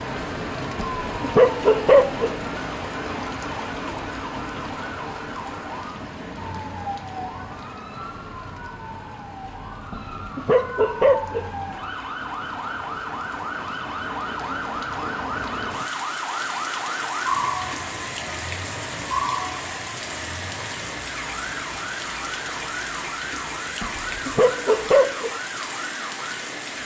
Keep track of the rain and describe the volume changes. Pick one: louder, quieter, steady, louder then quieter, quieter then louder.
quieter then louder.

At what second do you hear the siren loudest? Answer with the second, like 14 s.
17 s.